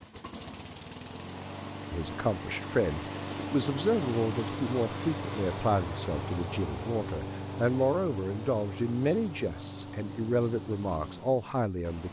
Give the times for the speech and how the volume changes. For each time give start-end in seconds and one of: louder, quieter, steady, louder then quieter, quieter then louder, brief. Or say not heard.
1.9-12.0 steady.